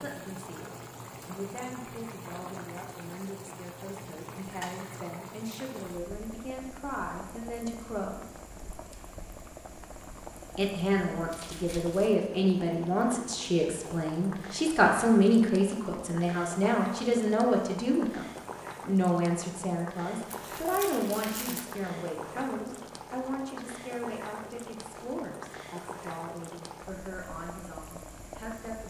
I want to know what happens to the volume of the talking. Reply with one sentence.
The loudness of the talking goes up, then down.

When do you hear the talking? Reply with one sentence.
The talking can be heard from 0.0 to 8.3 s and from 10.6 to 28.8 s.